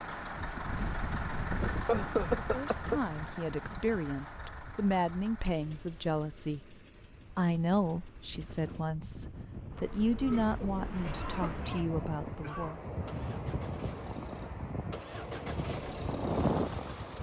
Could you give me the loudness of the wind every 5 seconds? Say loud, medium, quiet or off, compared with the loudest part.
medium, quiet, medium, loud.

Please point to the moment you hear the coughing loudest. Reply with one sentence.
The volume of the coughing peaks at 2 seconds.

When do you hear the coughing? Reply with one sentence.
The coughing can be heard from 1.6 to 3.0 s and from 10.2 to 12.8 s.